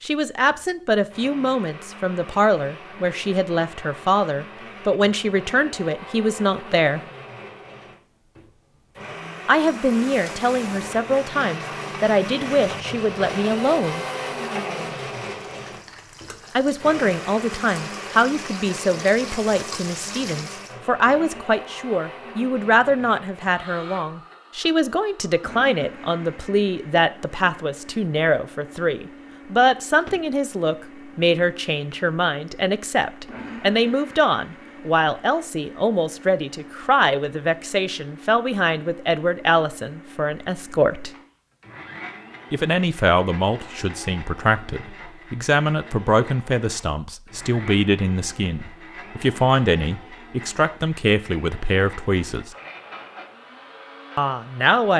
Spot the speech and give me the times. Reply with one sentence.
The speech can be heard from 0.0 to 7.0 s, from 9.4 to 14.1 s, from 16.6 to 41.1 s, from 42.5 to 52.5 s and from 54.1 to 54.9 s.